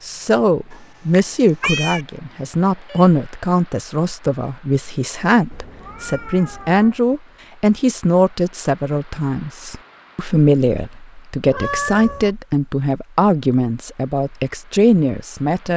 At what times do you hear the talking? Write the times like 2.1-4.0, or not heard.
0.0-15.7.